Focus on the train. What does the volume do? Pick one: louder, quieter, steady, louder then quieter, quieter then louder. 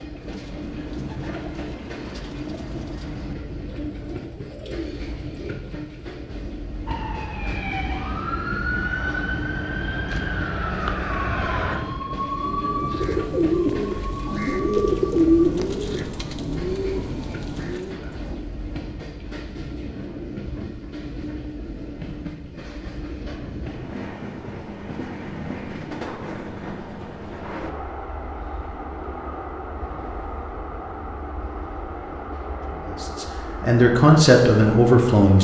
steady.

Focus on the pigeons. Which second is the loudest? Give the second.
15 s.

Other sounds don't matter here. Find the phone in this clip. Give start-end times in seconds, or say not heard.
not heard.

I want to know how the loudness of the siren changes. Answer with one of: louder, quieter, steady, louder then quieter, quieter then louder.
quieter.